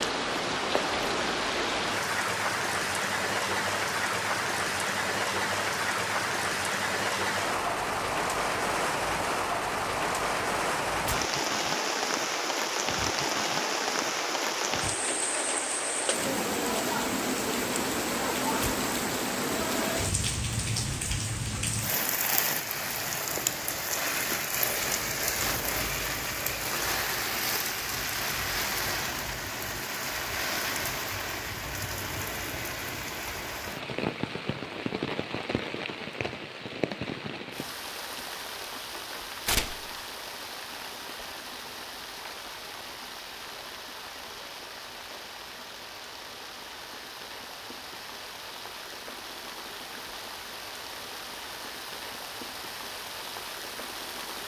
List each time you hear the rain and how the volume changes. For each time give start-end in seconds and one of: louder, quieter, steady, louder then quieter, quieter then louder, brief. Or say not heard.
0.0-54.4 quieter.